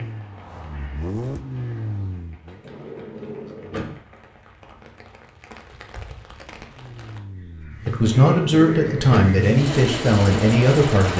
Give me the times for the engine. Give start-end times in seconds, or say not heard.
0.0-2.6, 6.5-11.1.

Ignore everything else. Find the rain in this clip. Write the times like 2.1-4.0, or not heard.
0.0-7.2.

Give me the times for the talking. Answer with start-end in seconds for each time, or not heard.
7.8-11.1.